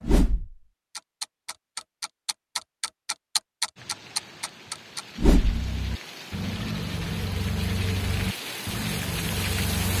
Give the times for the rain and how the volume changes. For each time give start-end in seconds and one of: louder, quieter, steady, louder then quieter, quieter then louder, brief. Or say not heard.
3.8-9.9 louder.